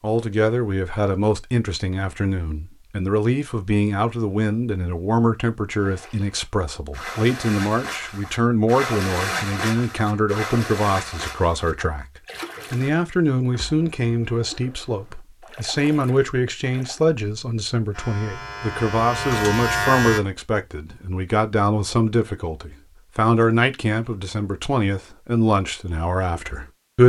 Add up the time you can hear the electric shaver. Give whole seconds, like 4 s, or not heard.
2 s.